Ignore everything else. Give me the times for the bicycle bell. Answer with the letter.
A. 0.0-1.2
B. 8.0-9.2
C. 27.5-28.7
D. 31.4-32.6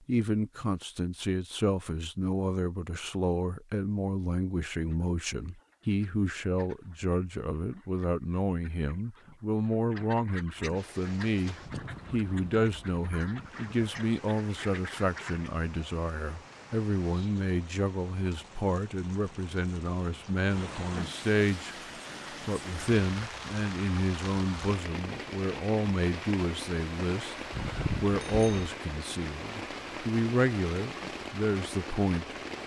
C.